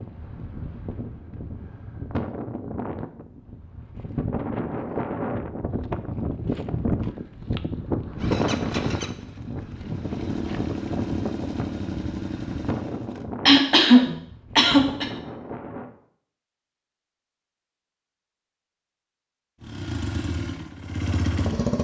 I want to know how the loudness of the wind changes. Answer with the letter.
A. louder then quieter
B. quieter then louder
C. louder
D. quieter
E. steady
A.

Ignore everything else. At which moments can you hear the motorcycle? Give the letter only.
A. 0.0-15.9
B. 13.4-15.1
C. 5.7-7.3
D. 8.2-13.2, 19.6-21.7
D.